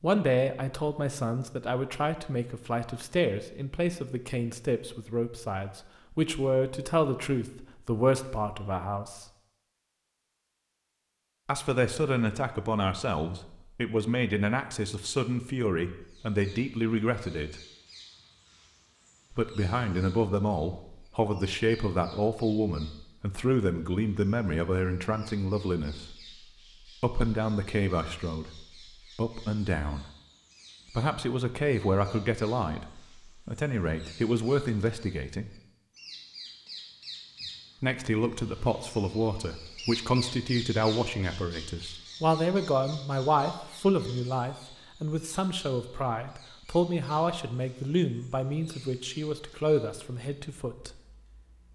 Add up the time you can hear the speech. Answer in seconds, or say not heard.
43 s.